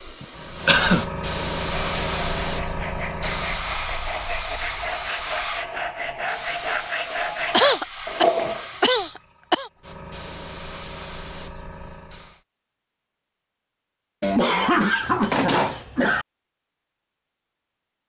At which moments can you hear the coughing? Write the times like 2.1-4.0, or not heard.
0.2-1.1, 7.5-9.7, 14.2-16.2.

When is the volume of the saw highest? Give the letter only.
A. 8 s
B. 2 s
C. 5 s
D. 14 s
A.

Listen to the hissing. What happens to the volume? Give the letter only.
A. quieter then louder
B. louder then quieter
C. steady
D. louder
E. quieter
E.